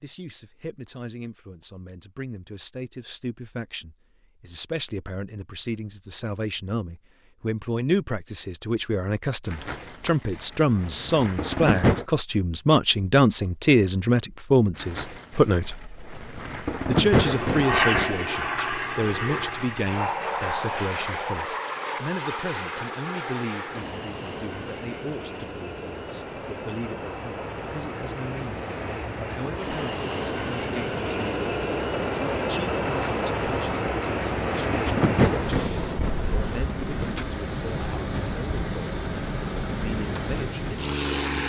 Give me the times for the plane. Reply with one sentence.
You can hear the plane from 17.1 to 41.4 s.